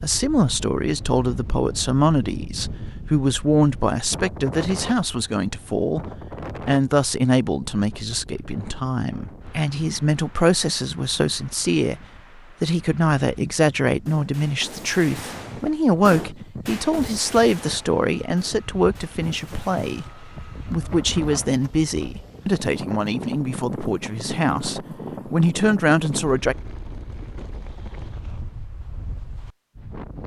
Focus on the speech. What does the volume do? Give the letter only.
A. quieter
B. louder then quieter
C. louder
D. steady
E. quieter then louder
D.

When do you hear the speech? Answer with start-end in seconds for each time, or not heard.
0.0-6.0, 6.7-12.0, 12.6-26.6.